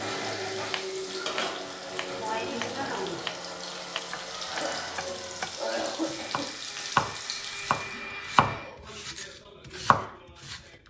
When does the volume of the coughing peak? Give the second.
6 s.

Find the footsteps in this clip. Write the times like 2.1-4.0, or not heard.
not heard.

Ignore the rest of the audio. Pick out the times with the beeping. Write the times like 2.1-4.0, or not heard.
not heard.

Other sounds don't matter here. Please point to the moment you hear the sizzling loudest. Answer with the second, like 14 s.
3 s.